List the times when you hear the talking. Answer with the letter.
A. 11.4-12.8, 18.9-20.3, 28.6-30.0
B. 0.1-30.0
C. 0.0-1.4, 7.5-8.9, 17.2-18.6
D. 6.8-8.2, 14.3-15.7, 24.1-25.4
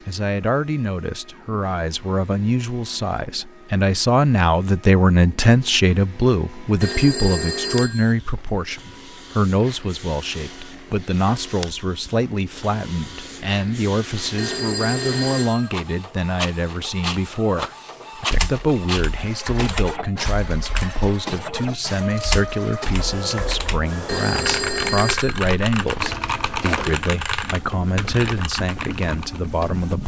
B.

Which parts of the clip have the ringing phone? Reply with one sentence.
You can hear the ringing phone from 6.8 to 8.2 s, from 14.3 to 15.7 s and from 24.1 to 25.4 s.